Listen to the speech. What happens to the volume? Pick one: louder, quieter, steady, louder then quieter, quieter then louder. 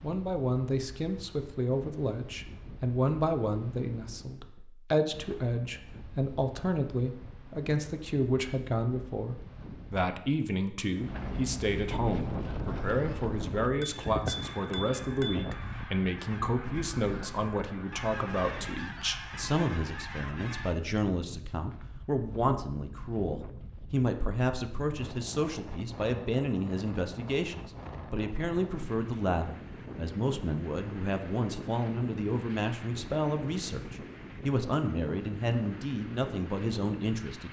steady.